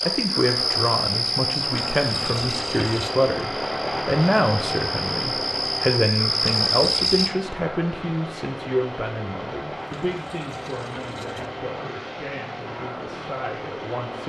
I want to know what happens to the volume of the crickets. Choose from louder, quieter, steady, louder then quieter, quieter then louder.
quieter then louder.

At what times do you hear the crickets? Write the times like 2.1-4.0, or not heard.
0.0-7.3.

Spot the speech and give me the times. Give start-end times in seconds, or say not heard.
0.0-14.2.